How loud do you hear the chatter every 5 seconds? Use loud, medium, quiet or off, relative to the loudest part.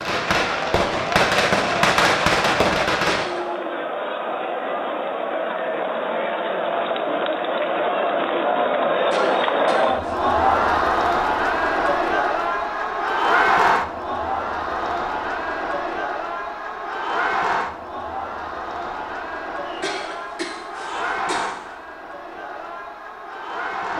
medium, loud, loud, medium, medium.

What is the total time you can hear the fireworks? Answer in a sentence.
You can hear the fireworks for 3 seconds altogether.